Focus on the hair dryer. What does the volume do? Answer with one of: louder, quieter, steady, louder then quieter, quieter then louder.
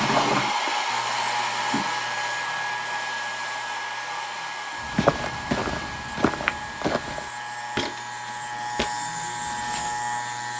quieter.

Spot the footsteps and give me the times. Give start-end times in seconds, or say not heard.
4.8-10.1.